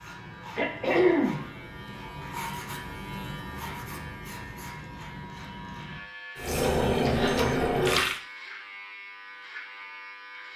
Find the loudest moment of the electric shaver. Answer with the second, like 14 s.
3 s.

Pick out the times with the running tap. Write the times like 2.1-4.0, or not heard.
6.3-8.2.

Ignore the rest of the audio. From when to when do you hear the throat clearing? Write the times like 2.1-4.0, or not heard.
0.6-1.5, 7.0-7.5.